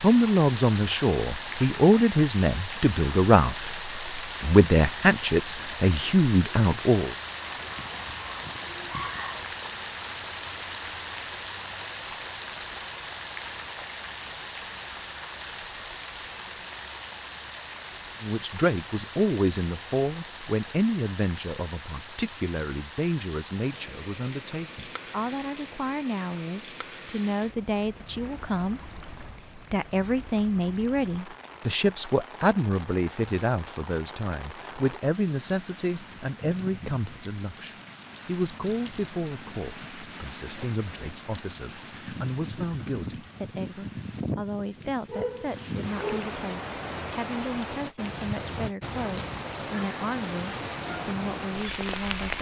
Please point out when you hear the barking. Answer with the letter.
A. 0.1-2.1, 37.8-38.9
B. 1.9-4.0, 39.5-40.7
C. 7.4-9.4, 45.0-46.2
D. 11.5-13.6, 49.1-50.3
C.